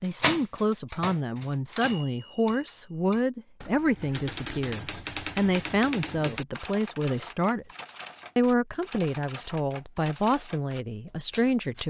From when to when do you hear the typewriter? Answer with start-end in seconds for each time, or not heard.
0.0-11.8.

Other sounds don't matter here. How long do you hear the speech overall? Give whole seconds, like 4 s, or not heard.
11 s.